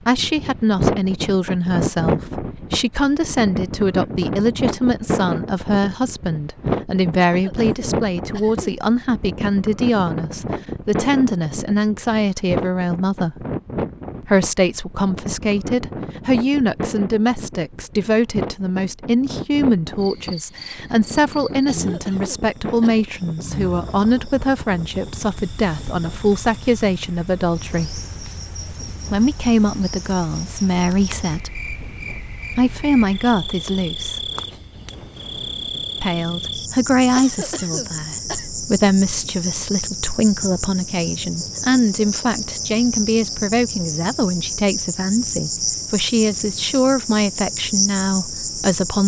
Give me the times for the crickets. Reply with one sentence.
The crickets can be heard from 19.9 to 49.0 s.